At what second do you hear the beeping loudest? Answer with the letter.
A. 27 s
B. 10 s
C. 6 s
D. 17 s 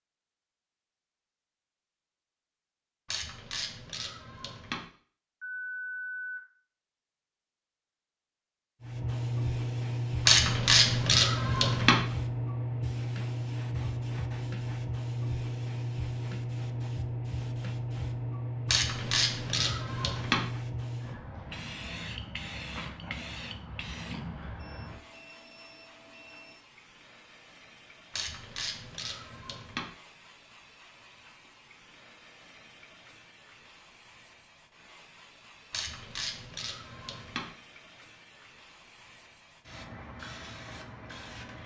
C.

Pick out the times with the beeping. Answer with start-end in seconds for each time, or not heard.
5.4-6.4, 24.6-26.6.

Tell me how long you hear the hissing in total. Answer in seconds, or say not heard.
33 s.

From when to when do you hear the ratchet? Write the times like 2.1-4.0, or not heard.
3.0-4.8, 10.2-12.1, 18.6-20.4, 28.1-29.9, 35.7-37.5.